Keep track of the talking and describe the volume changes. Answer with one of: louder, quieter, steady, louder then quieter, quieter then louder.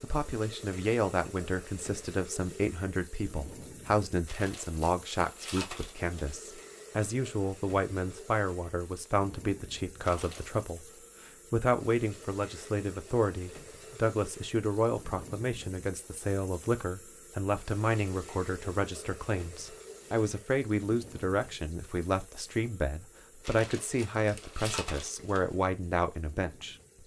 steady.